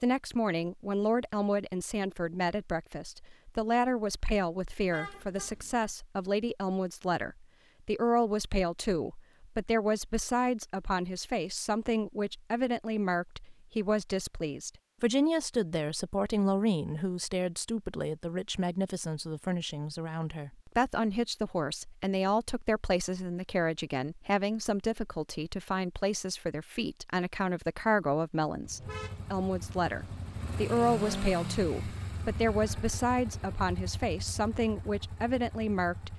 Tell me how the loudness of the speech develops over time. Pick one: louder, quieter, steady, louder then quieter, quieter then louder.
steady.